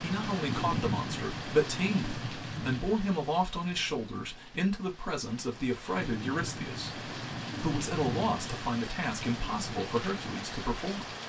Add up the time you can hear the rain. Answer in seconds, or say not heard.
11 s.